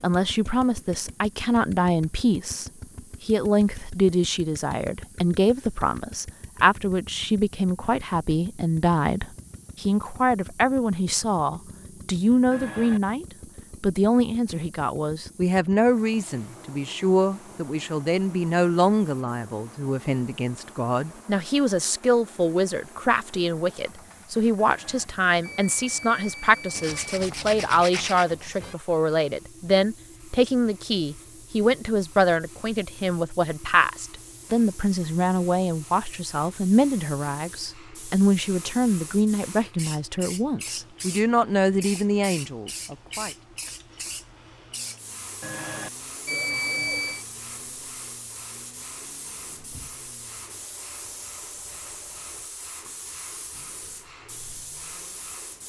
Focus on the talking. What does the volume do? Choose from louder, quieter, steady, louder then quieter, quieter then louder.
steady.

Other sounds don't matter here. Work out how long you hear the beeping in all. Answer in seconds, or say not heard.
5 s.